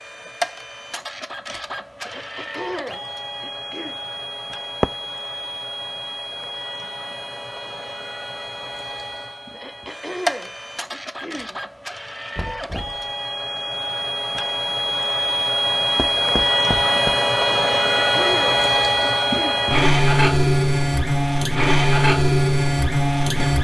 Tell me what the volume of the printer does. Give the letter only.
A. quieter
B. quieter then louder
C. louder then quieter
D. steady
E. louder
E.